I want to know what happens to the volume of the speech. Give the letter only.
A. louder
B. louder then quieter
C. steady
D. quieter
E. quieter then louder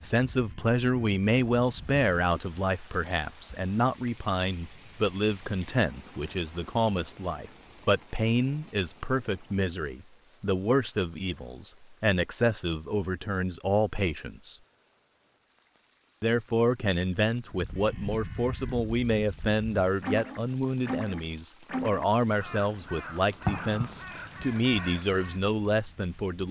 C.